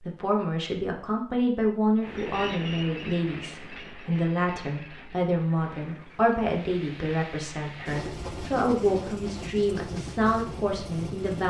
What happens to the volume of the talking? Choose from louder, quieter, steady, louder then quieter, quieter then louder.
steady.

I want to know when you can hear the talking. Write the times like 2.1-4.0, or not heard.
0.0-11.4.